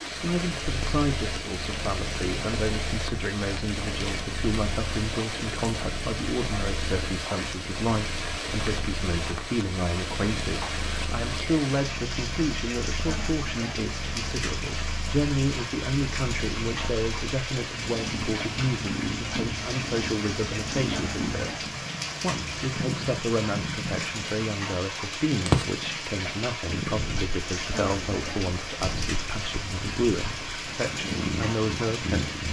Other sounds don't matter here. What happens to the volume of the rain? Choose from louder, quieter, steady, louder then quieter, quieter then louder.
steady.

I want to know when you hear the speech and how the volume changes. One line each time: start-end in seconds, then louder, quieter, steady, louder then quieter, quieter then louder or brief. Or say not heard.
0.1-32.4 steady.